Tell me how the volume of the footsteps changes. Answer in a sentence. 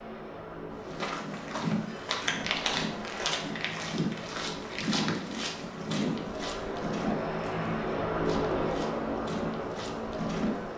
The loudness of the footsteps goes down.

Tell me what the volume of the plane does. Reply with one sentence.
The volume of the plane goes up.